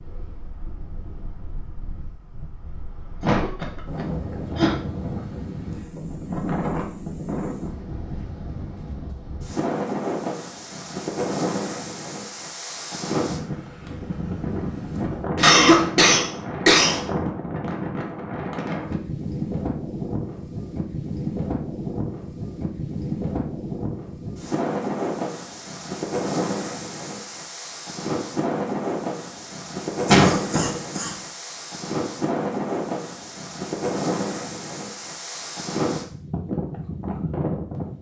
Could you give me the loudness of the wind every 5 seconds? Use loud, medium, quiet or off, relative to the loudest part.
medium, loud, loud, loud, loud, loud, loud, loud.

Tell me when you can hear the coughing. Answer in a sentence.
The coughing can be heard from 3.2 to 4.8 s, from 15.3 to 17.1 s and from 30.1 to 31.1 s.